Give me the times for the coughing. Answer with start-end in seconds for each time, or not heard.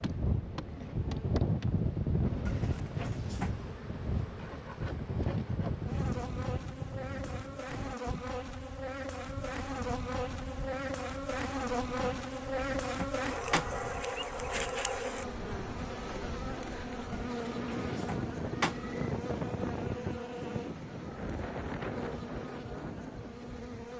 not heard.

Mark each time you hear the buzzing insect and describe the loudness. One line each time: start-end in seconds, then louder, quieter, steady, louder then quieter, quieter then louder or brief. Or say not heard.
0.0-23.9 louder then quieter.